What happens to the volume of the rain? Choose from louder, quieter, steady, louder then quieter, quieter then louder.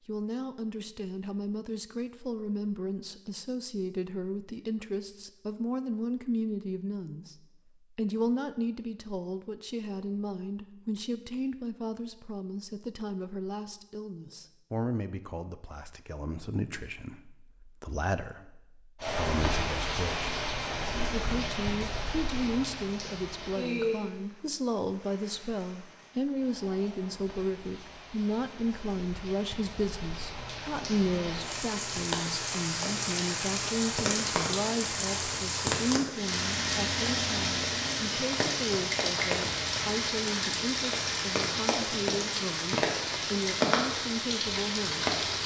quieter then louder.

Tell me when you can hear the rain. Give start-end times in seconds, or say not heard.
19.0-45.4.